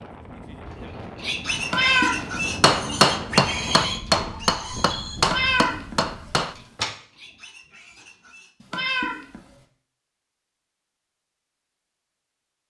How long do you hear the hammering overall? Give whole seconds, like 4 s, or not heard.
4 s.